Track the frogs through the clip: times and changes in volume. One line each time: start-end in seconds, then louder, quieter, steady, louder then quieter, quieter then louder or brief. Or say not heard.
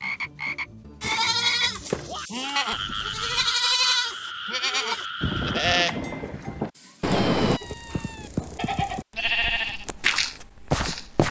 0.0-5.8 steady.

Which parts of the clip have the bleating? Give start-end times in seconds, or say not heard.
1.0-11.2.